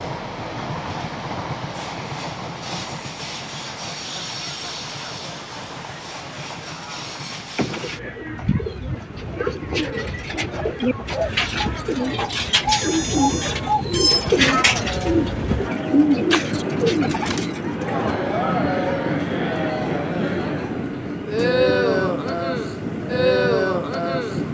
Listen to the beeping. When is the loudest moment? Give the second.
14 s.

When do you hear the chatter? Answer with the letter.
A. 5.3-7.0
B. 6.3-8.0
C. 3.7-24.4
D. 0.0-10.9
C.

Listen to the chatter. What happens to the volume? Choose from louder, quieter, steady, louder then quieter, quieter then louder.
louder.